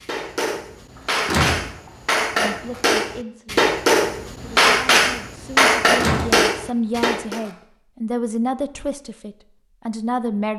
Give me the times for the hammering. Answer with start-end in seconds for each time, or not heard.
0.0-7.5.